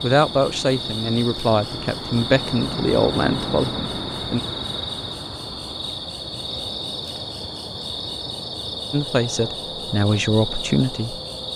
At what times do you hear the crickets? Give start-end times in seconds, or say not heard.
0.0-11.5.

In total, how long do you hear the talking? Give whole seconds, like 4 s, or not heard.
7 s.